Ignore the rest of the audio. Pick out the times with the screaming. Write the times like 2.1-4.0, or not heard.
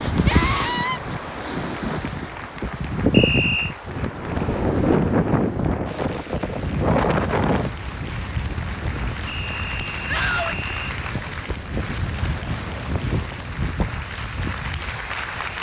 0.2-1.0, 10.1-10.6.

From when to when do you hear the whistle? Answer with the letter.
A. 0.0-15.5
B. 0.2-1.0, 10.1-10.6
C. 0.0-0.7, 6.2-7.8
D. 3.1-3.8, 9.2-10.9
D.